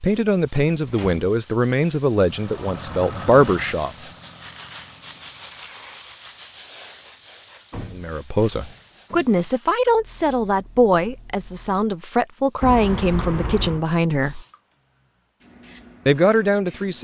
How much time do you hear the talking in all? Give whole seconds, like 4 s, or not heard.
11 s.